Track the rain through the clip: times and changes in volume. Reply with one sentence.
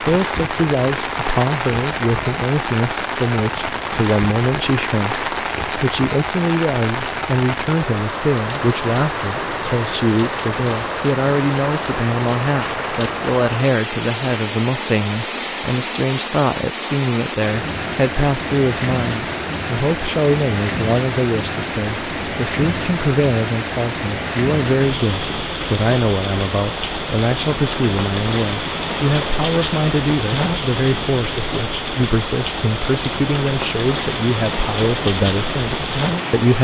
You can hear the rain from 0.0 to 36.5 s, at a steady volume.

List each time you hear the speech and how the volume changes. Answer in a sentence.
You can hear the speech from 0.0 to 36.5 s, at a steady volume.